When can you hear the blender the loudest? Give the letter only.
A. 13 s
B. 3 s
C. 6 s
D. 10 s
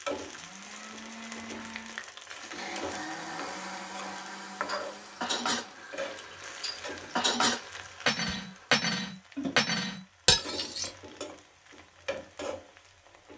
B.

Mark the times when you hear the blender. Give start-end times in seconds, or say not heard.
0.2-8.8.